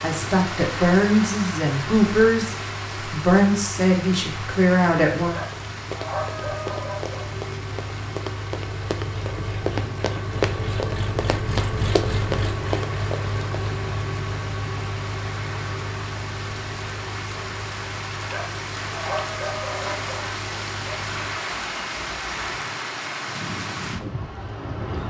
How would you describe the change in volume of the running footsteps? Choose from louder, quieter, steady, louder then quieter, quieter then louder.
louder.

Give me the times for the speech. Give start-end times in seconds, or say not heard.
0.0-5.4.